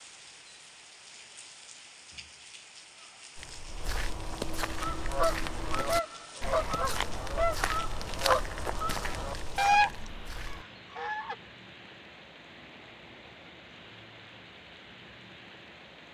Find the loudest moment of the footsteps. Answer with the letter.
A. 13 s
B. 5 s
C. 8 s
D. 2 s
C.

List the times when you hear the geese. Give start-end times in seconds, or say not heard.
4.8-9.9, 10.9-11.3.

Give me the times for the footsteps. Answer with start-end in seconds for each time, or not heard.
3.4-10.7.